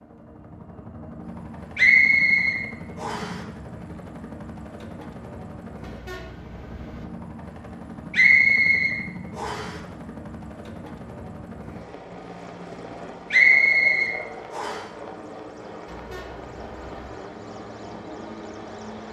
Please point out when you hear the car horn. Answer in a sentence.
The car horn can be heard from 5.8 to 7.0 s and from 15.8 to 17.1 s.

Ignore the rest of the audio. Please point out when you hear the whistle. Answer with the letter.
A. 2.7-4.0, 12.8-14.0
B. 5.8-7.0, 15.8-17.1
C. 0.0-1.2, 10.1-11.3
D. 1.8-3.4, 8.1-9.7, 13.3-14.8
D.